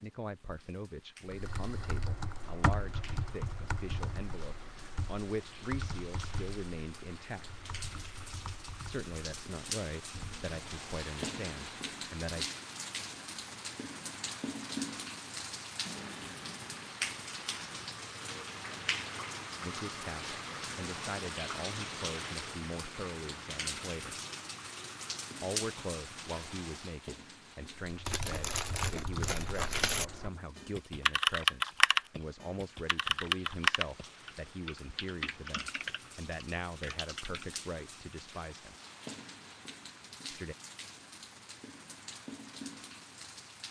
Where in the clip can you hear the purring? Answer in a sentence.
The purring can't be heard in this clip.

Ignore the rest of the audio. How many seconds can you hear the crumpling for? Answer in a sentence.
You can hear the crumpling for 2 seconds altogether.